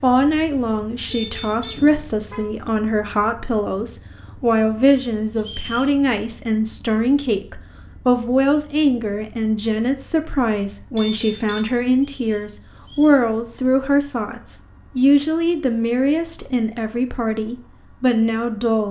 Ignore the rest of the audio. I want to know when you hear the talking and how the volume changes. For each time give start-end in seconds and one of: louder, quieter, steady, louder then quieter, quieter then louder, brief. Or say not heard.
0.0-18.8 steady.